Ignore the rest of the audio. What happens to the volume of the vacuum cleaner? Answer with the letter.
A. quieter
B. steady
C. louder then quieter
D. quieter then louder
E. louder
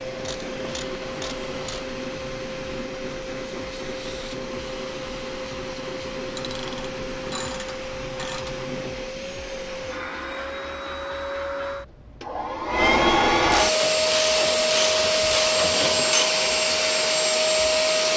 E.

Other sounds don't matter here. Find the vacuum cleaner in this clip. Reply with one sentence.
The vacuum cleaner can be heard from 0.0 to 18.1 s.